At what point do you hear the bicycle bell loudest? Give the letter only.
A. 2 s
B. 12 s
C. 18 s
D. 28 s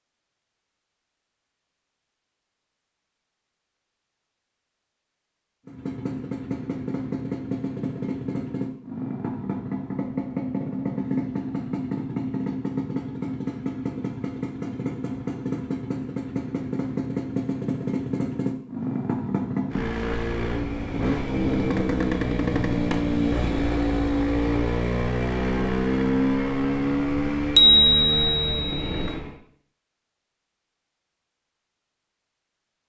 D.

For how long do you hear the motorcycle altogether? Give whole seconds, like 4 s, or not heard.
24 s.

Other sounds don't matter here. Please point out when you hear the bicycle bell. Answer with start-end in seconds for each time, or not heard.
27.6-29.1.